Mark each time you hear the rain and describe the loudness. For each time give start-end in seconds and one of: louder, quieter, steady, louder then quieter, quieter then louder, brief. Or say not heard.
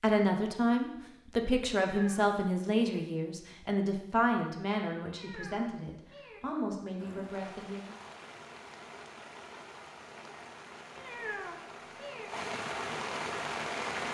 7.0-14.1 louder.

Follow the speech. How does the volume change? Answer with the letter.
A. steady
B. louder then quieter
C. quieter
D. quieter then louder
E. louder
C.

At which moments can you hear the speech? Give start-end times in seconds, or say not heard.
0.0-8.0.